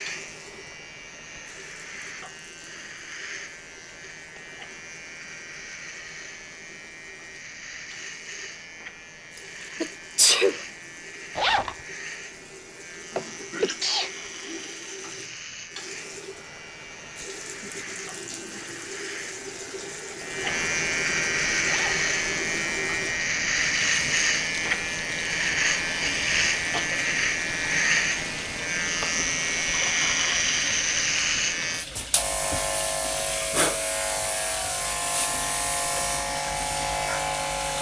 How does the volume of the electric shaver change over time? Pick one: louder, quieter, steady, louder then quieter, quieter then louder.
louder.